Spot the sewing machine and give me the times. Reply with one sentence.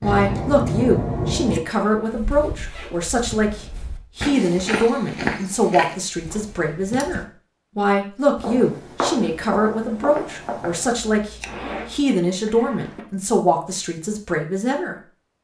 The sewing machine can't be heard in this clip.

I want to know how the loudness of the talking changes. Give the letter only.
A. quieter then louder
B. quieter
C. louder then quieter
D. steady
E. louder
D.